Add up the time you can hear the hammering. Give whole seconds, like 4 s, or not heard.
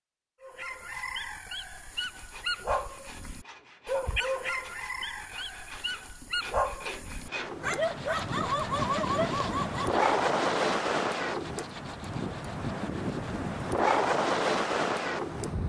not heard.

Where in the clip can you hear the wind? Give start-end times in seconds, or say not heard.
7.2-15.6.